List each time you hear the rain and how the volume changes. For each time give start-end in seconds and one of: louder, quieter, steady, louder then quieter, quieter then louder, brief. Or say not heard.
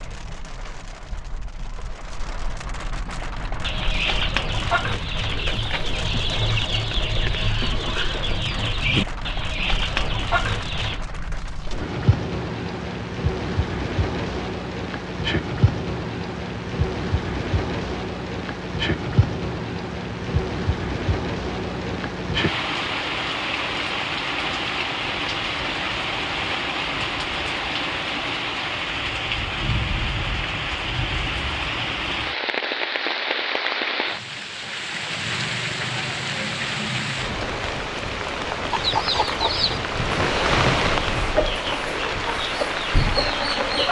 0.0-43.8 louder.